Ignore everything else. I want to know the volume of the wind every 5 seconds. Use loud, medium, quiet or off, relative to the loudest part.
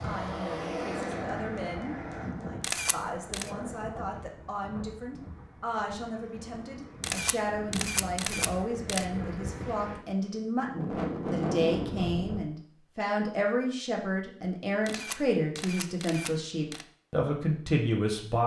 medium, medium, loud, off.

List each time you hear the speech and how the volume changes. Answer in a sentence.
The speech can be heard from 0.0 to 18.4 s, getting louder.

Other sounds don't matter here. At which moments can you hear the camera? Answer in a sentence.
You can hear the camera from 2.6 to 3.5 s, from 7.0 to 9.1 s and from 14.8 to 16.9 s.